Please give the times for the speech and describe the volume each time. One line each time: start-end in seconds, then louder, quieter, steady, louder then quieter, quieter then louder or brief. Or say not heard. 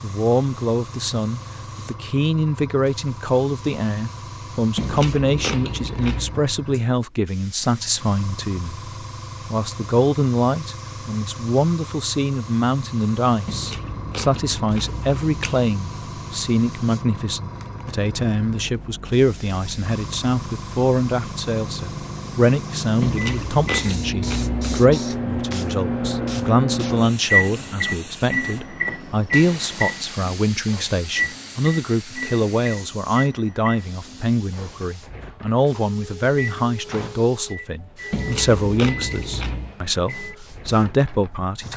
0.0-41.7 steady.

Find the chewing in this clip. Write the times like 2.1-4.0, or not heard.
4.8-6.4, 13.4-15.7, 23.0-24.9, 38.1-39.8.